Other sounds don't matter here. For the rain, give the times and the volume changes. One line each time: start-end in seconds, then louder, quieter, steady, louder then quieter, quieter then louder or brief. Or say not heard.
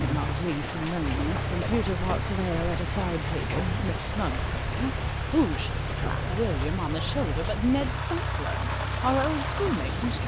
0.0-10.2 steady.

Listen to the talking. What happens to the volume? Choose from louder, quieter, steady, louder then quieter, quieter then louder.
steady.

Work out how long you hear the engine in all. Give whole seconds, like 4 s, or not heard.
10 s.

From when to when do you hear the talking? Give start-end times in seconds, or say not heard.
0.0-10.2.